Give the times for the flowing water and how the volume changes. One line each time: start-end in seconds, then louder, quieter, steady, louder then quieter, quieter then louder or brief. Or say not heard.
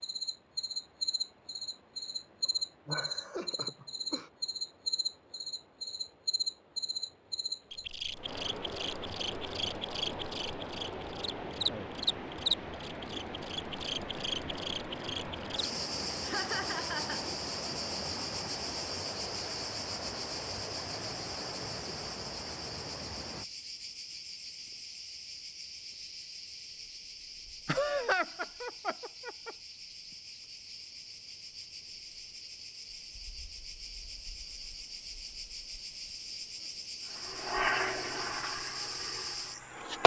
0.0-23.4 louder.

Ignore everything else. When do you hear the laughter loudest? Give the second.
28 s.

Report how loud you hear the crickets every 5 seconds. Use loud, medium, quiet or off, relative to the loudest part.
loud, loud, loud, loud, medium, medium, medium, medium.